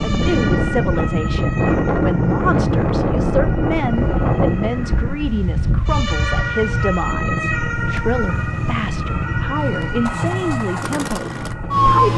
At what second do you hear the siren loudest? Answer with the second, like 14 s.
12 s.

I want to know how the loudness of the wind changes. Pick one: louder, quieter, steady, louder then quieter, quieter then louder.
quieter.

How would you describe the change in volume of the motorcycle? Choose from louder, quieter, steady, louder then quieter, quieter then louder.
steady.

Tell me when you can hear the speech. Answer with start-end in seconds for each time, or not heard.
0.0-12.1.